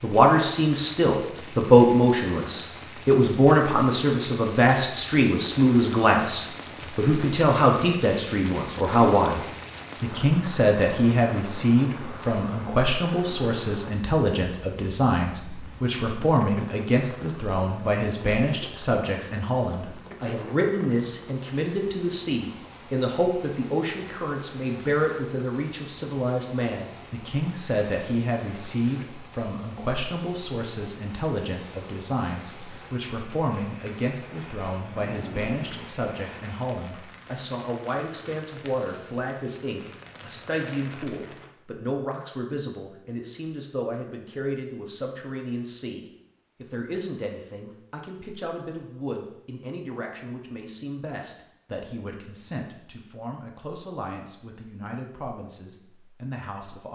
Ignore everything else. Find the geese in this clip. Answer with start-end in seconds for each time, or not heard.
not heard.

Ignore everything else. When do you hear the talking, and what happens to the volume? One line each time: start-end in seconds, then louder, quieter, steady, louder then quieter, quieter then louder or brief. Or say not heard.
0.0-56.9 quieter.